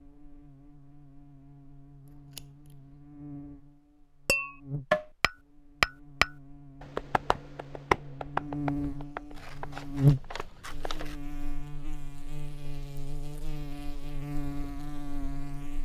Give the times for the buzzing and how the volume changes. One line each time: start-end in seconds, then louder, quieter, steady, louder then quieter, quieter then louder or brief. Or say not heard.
0.0-15.8 louder then quieter.